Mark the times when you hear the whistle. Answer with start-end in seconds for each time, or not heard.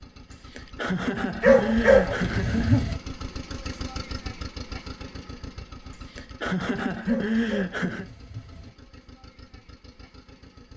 not heard.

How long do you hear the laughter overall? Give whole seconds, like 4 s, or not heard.
5 s.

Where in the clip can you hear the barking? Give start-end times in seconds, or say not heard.
1.4-3.0, 7.0-8.7.